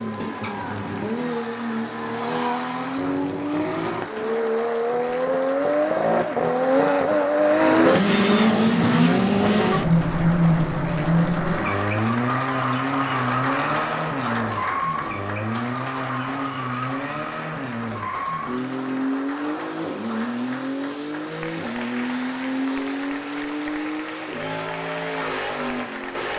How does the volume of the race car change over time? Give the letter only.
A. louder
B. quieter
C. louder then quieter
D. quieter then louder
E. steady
C.